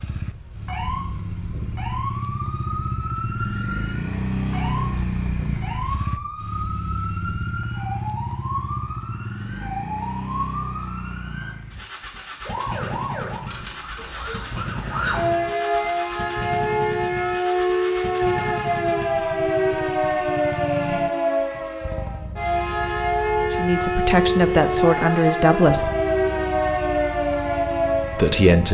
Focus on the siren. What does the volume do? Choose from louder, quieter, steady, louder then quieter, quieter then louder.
louder.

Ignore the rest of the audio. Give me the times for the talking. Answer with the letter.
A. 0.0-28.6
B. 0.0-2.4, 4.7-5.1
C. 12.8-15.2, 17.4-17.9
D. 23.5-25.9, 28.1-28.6
D.